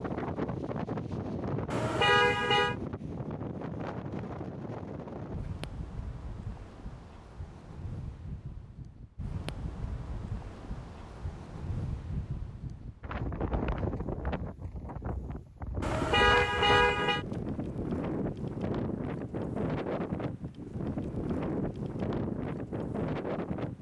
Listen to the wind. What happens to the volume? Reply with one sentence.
The volume of the wind goes down, then up.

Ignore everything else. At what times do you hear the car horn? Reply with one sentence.
You can hear the car horn from 1.7 to 2.8 s and from 15.8 to 17.2 s.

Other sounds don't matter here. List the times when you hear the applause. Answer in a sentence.
The applause can't be heard in this clip.